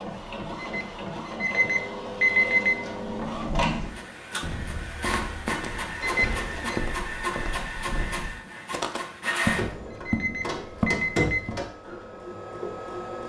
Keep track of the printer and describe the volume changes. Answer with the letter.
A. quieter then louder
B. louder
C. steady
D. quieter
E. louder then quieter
C.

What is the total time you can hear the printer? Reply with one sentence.
The printer can be heard for 13 seconds in total.